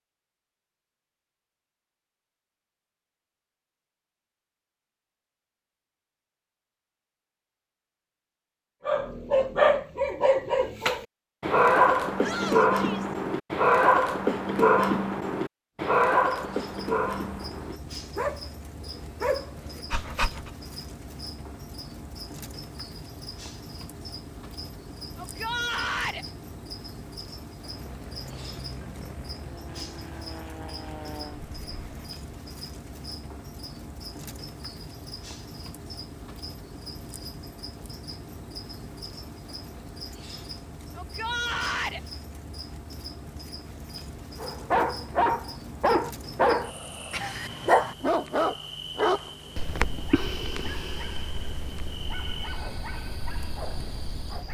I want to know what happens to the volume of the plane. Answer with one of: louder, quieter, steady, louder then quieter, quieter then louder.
steady.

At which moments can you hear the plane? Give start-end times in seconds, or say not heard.
27.6-32.1.